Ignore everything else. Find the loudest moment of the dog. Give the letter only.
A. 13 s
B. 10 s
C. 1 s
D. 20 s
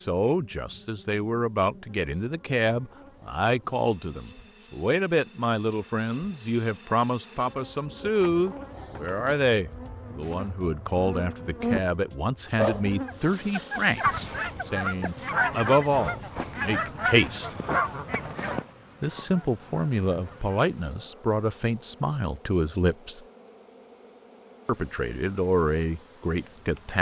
A.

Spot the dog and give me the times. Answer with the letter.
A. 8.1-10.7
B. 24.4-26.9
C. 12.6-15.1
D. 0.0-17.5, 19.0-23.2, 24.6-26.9
C.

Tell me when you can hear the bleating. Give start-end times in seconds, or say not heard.
not heard.